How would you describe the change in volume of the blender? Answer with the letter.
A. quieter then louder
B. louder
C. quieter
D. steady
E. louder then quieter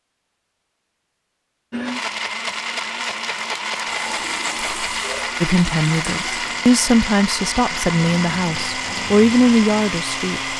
D.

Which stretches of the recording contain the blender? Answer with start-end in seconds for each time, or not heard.
1.7-10.5.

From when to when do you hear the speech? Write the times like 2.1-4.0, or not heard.
5.4-10.5.